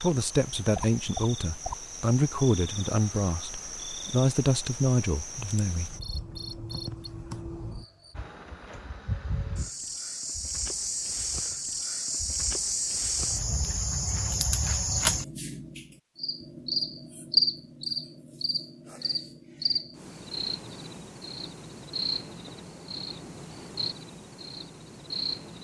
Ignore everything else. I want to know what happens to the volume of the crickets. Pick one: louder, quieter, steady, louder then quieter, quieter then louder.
louder then quieter.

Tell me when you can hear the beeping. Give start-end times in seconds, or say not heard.
not heard.